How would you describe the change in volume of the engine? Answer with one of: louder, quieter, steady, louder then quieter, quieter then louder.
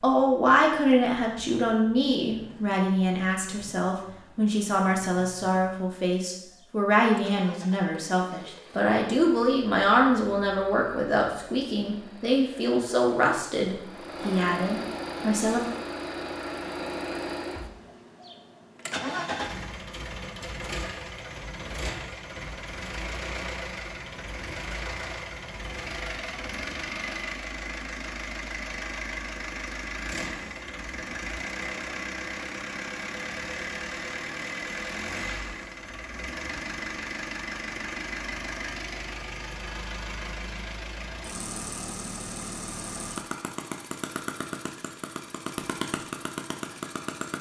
louder.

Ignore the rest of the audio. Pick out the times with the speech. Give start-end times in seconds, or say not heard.
0.0-15.6.